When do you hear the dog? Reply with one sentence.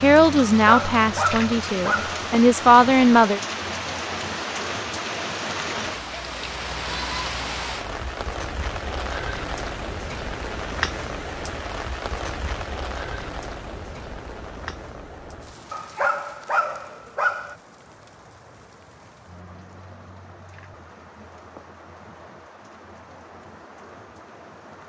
You can hear the dog from 0.6 to 2.2 s and from 15.7 to 17.6 s.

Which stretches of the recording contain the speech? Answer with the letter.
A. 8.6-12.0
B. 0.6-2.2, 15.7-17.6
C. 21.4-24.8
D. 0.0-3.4
D.